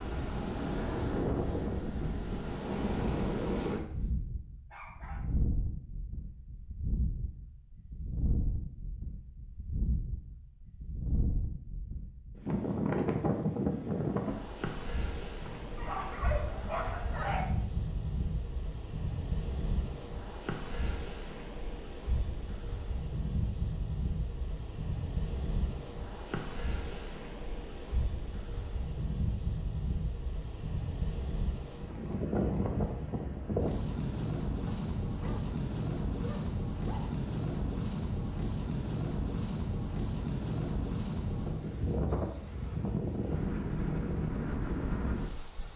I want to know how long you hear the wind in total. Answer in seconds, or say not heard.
46 s.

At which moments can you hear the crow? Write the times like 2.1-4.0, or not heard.
not heard.